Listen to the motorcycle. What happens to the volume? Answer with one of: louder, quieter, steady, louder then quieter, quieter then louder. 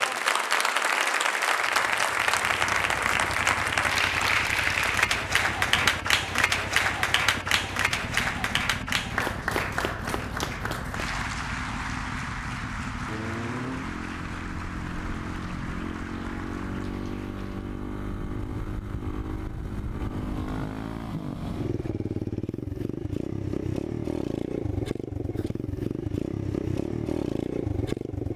louder.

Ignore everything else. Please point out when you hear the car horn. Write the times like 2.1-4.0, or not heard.
not heard.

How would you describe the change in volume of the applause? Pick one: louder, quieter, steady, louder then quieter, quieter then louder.
quieter.